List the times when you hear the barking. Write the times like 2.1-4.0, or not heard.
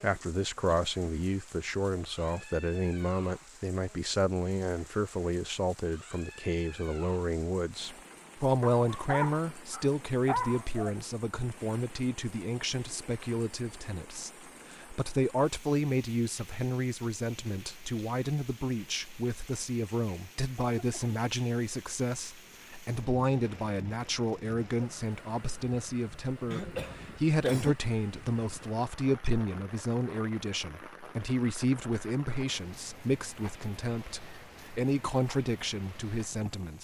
8.6-10.9.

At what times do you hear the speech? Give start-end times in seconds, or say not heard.
0.0-36.7.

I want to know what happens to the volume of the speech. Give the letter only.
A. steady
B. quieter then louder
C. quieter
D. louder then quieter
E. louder
A.